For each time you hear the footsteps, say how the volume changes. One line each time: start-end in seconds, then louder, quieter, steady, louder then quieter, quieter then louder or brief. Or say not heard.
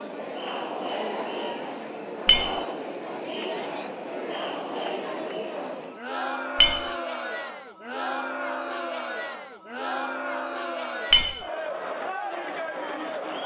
not heard.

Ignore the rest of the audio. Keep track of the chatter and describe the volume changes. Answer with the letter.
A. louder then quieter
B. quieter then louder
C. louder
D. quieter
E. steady
E.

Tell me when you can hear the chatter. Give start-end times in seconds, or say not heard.
0.0-13.4.